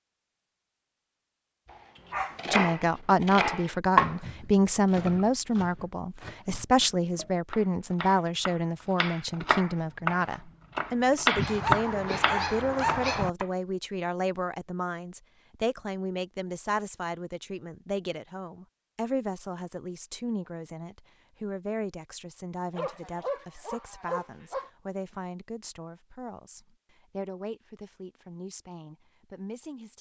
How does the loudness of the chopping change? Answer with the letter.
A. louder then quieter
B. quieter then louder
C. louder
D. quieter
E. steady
B.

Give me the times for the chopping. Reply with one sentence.
The chopping can be heard from 2.4 to 13.4 s.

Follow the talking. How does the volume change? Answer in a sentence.
The loudness of the talking goes down.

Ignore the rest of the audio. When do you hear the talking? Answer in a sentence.
The talking can be heard from 2.5 to 29.9 s.